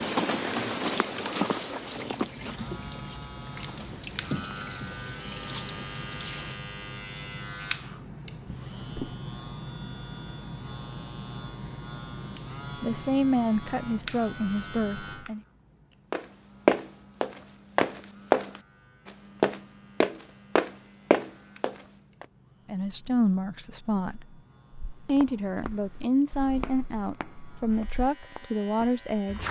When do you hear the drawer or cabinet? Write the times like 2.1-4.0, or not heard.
8.4-9.2.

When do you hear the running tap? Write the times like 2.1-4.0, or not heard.
0.0-6.6.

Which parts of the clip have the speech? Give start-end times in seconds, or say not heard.
12.8-15.4, 22.6-24.4, 25.1-29.4.